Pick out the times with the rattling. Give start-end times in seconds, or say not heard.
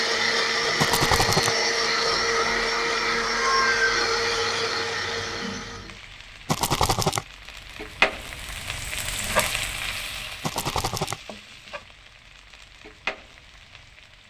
0.8-1.6, 6.5-7.2, 10.4-11.2.